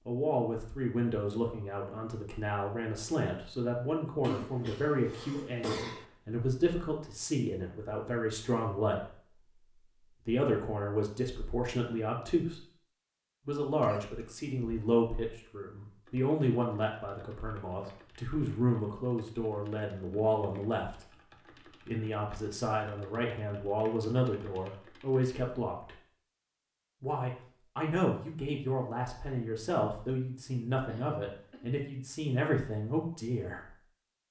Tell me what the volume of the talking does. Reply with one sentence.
The loudness of the talking stays about the same.